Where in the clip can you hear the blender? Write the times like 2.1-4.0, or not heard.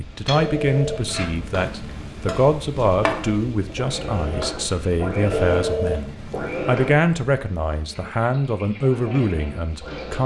3.0-7.0, 8.8-10.2.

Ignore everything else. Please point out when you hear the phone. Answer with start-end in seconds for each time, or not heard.
0.3-2.3, 5.3-6.6.